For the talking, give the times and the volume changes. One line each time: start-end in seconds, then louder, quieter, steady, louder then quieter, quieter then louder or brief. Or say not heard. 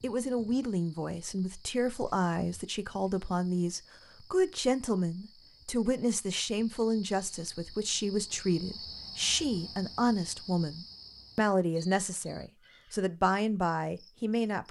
0.0-14.6 steady.